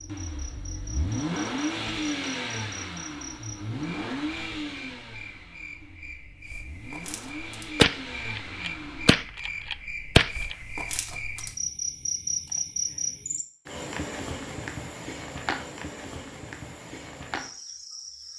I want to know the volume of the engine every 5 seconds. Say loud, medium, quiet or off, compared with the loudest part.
loud, medium, off, off.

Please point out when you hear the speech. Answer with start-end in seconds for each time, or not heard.
not heard.